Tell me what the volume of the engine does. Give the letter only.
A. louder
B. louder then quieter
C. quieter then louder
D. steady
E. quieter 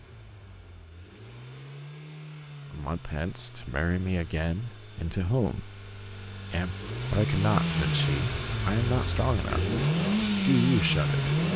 A.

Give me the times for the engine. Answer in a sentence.
The engine can be heard from 0.0 to 11.5 s.